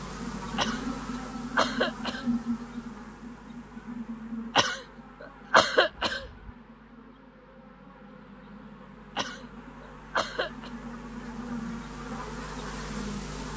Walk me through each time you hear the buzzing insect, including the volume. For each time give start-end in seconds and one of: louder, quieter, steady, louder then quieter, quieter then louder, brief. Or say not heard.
0.0-13.5 quieter then louder.